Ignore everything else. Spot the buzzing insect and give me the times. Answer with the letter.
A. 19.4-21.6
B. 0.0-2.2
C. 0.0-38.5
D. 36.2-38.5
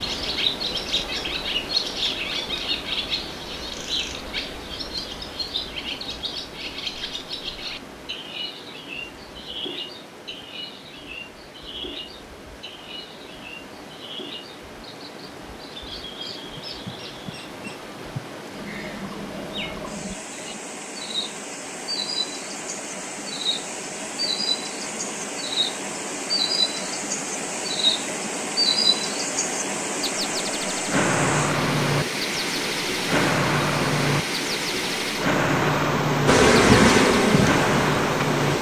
D.